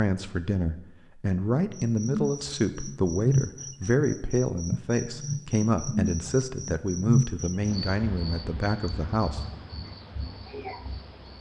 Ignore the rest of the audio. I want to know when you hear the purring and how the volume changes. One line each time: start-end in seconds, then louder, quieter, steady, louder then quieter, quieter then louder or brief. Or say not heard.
not heard.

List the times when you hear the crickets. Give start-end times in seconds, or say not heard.
1.8-11.3.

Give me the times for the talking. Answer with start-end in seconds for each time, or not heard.
0.0-9.4.